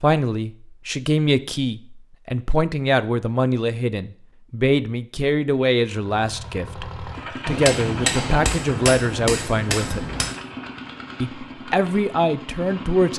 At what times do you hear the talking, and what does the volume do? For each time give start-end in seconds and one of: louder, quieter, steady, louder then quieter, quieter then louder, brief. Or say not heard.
0.0-10.1 steady
11.2-13.1 brief.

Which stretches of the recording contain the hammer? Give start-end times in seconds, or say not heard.
7.5-10.3.